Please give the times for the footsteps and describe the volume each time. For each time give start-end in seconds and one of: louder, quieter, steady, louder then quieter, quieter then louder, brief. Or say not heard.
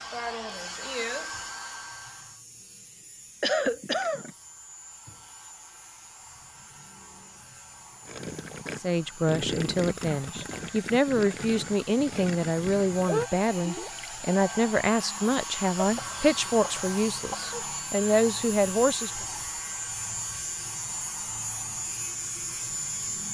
not heard.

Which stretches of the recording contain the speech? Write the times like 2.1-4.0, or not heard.
8.8-19.1.